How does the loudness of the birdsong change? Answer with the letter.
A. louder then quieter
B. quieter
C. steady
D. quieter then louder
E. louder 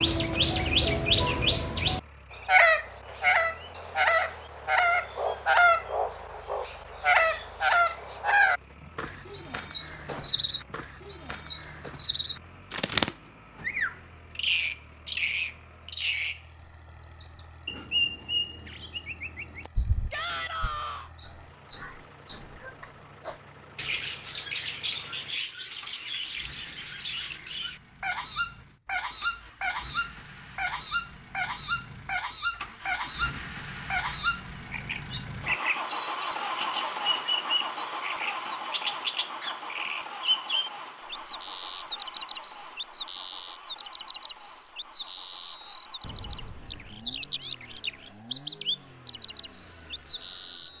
B.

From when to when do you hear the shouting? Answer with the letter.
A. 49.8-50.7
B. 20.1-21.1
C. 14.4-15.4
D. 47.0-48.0
B.